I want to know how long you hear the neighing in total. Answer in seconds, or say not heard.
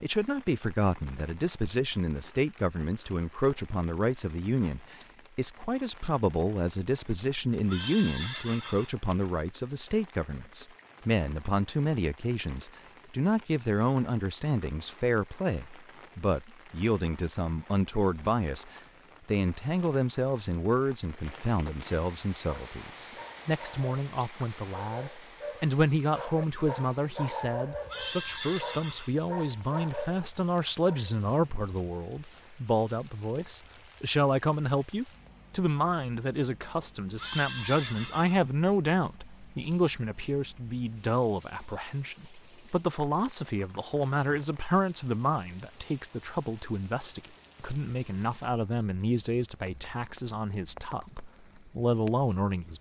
4 s.